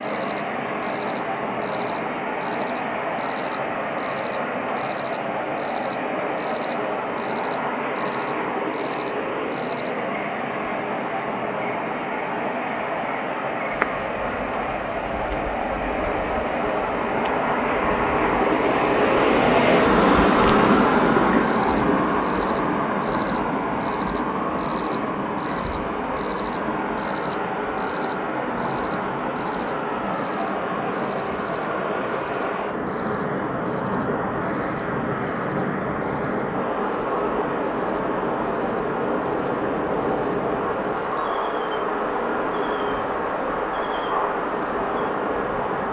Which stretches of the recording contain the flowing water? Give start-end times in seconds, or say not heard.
0.0-45.8.